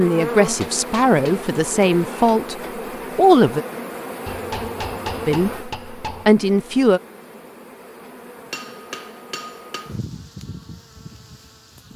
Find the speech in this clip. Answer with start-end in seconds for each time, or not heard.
0.0-2.5, 3.1-3.6, 5.2-7.0.